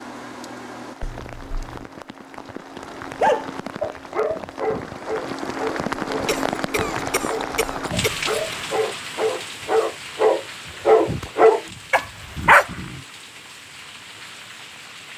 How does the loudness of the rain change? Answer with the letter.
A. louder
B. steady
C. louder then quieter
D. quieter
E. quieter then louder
C.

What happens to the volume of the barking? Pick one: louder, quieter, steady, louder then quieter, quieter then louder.
quieter then louder.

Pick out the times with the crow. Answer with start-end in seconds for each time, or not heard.
not heard.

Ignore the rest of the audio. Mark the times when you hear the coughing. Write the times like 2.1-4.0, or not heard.
1.0-1.9, 6.2-8.6, 12.3-13.1.